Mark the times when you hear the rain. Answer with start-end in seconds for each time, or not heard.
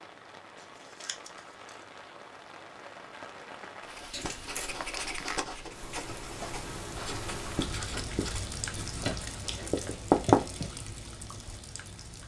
0.0-12.2.